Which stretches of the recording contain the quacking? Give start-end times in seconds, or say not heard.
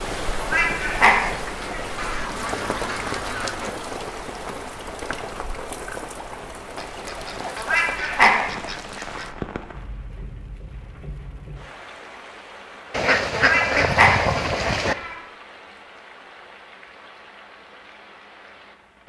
1.9-3.8, 6.8-9.3, 12.9-14.9.